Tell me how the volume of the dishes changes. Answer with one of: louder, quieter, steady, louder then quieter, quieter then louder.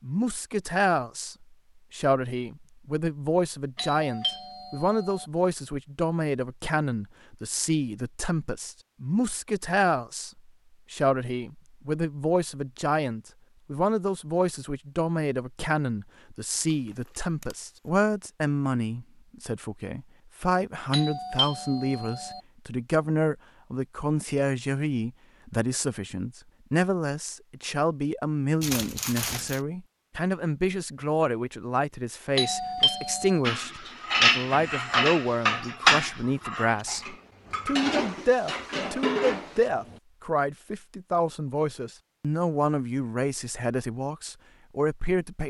quieter then louder.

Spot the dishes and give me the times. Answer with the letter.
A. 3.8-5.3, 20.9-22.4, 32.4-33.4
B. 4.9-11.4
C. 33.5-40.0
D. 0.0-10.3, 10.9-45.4
C.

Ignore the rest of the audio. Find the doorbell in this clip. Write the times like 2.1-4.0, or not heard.
3.8-5.3, 20.9-22.4, 32.4-33.4.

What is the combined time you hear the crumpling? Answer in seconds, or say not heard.
2 s.